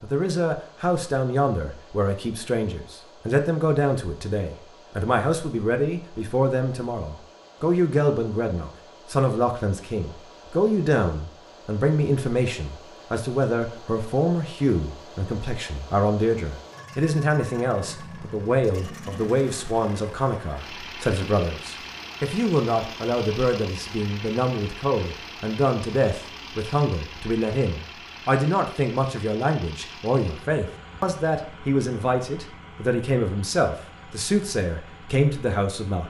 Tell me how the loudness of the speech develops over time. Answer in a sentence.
The loudness of the speech stays about the same.